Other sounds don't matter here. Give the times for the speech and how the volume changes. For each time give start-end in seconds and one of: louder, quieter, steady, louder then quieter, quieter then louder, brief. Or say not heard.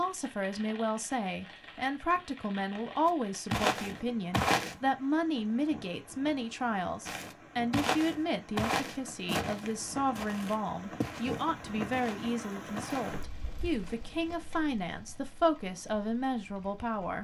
0.0-17.1 steady.